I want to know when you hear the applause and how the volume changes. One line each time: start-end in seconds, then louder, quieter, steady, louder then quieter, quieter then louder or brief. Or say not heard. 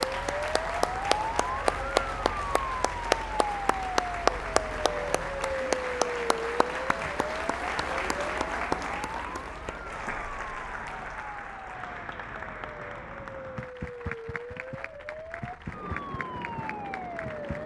0.0-17.6 quieter.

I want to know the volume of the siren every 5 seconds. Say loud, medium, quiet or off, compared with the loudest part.
loud, loud, medium, loud.